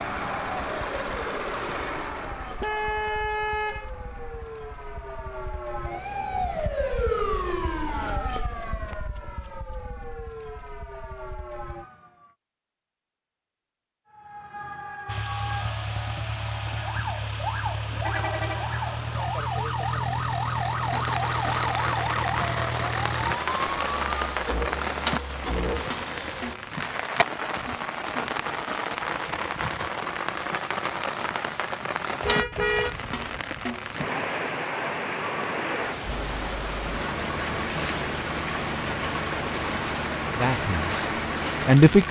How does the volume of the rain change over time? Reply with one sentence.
The loudness of the rain stays about the same.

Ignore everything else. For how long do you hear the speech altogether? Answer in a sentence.
You can hear the speech for 2 seconds altogether.